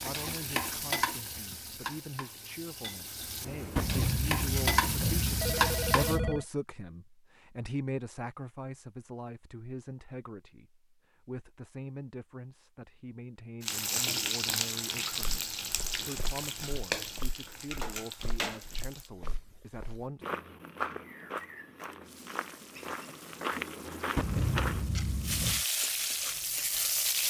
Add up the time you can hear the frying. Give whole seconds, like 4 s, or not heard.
17 s.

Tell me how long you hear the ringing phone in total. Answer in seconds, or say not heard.
4 s.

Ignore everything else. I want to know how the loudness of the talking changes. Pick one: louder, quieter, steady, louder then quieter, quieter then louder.
louder then quieter.